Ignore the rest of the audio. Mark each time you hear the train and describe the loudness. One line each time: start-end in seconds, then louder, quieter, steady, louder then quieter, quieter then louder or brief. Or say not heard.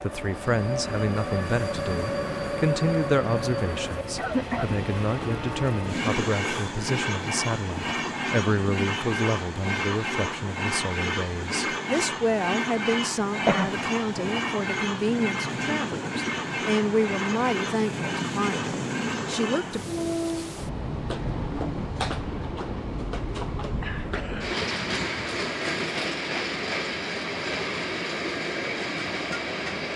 0.0-29.9 steady.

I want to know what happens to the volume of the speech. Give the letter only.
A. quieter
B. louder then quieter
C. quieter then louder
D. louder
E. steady
E.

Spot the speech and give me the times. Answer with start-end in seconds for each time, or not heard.
0.0-19.9.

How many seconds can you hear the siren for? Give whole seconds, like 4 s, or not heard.
not heard.